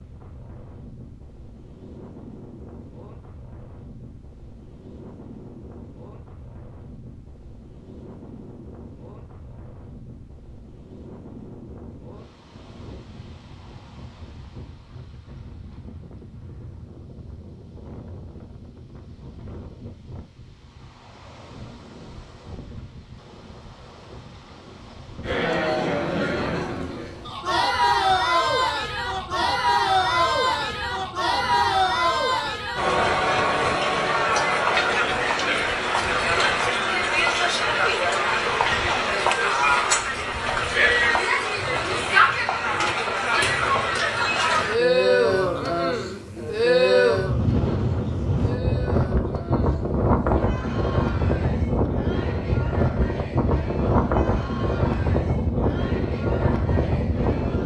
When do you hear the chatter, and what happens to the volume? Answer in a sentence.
The chatter can be heard from 25.2 to 57.6 s, getting quieter.